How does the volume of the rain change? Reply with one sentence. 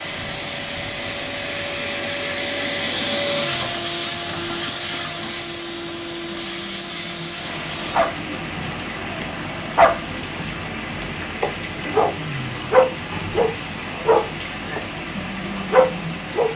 The volume of the rain goes up.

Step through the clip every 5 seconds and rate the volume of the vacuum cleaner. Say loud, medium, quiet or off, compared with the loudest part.
loud, medium, off, off.